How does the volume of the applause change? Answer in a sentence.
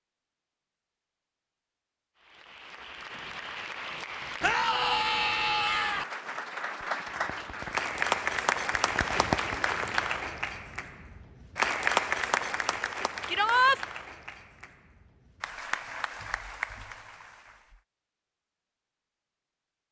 The loudness of the applause goes up, then down.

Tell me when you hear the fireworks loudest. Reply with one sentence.
The volume of the fireworks peaks at 9 seconds.